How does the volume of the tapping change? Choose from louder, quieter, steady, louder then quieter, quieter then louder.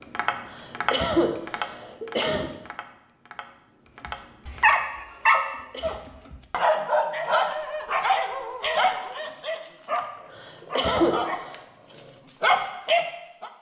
quieter then louder.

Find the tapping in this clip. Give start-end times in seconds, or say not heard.
0.0-4.8.